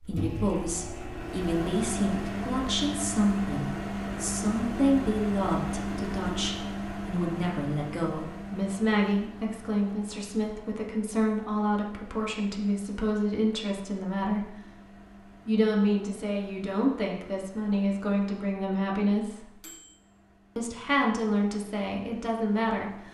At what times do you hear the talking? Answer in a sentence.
The talking can be heard from 0.0 to 14.5 s, from 15.2 to 19.6 s and from 20.6 to 23.0 s.